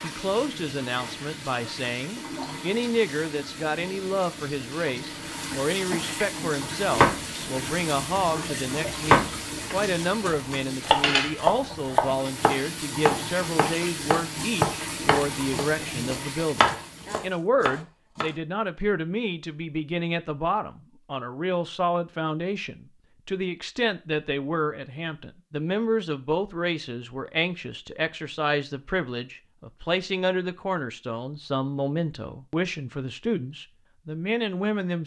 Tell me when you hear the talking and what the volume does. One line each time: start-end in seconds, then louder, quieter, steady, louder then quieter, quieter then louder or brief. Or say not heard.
0.0-35.0 steady.